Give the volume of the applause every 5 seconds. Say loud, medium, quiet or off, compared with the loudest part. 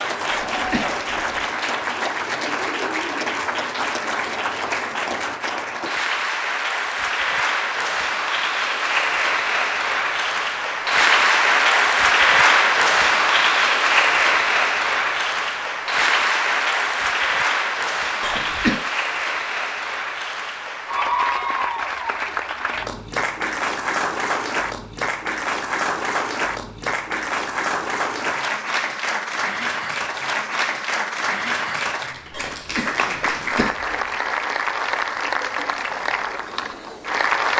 medium, medium, loud, medium, medium, medium, medium, medium.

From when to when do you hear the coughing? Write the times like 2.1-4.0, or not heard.
0.3-1.4, 18.2-18.9, 32.3-34.0.